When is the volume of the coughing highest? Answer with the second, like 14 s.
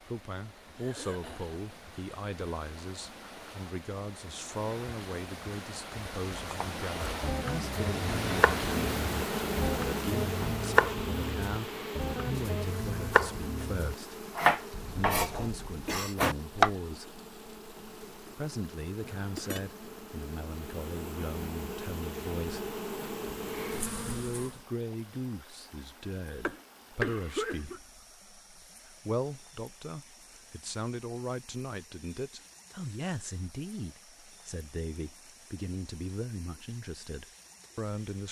27 s.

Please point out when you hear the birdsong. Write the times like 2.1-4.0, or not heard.
not heard.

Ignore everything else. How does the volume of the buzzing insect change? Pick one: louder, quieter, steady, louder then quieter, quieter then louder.
quieter then louder.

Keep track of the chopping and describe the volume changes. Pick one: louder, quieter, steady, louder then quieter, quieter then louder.
louder.